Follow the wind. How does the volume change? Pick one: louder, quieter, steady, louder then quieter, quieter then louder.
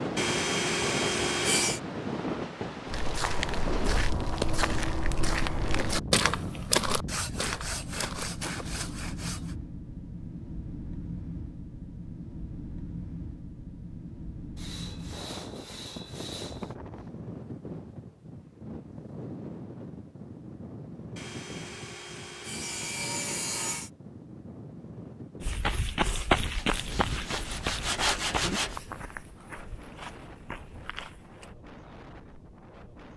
quieter.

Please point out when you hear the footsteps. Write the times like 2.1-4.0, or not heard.
2.9-8.9, 25.4-31.6.